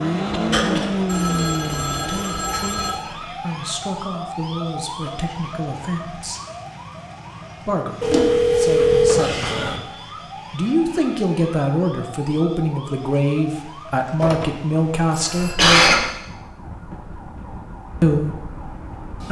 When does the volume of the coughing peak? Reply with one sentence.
The loudest moment of the coughing is at 16 seconds.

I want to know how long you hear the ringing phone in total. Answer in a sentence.
You can hear the ringing phone for 5 seconds altogether.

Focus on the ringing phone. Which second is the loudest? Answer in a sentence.
The loudest moment of the ringing phone is at 9 seconds.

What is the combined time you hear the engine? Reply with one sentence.
You can hear the engine for 2 seconds altogether.